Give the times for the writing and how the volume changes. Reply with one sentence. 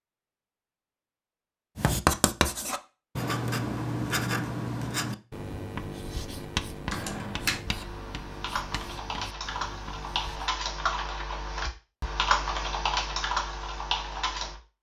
You can hear the writing from 1.8 to 10.5 s, getting quieter.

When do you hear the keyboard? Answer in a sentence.
The keyboard can be heard from 6.8 to 14.6 s.